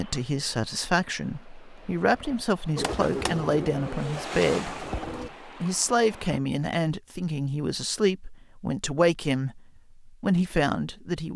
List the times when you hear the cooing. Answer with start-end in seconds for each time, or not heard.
2.8-5.3.